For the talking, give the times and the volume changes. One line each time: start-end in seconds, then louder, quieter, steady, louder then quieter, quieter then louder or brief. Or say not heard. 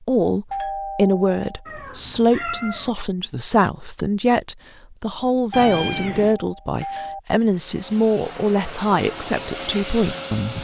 0.1-10.5 steady.